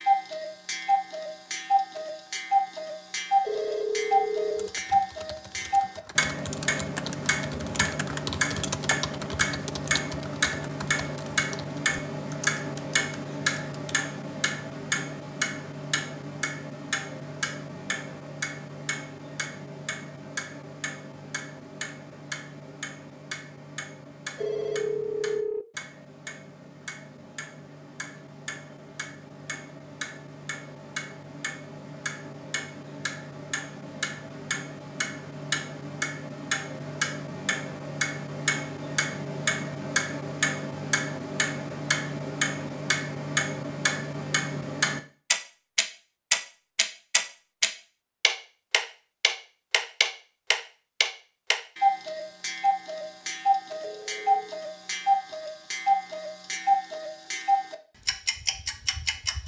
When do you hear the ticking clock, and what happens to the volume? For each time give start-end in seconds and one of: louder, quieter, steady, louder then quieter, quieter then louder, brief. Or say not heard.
0.0-59.4 quieter then louder.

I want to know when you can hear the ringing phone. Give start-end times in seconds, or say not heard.
3.4-4.7, 24.4-25.6, 53.8-54.6.